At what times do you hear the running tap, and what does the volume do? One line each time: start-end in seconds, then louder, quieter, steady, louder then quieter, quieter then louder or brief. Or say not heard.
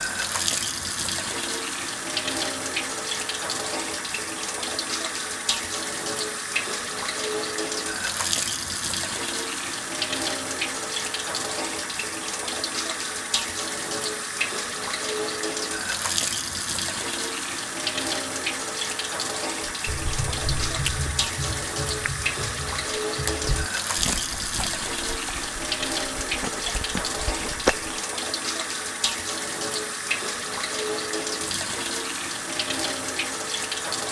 0.0-34.0 steady.